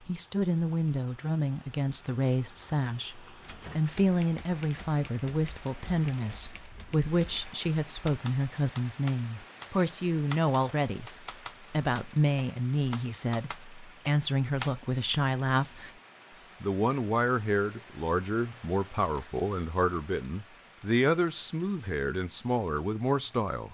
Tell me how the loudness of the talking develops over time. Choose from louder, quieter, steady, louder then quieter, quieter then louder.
steady.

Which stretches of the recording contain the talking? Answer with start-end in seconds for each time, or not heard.
0.1-11.1, 11.7-15.9, 16.6-23.6.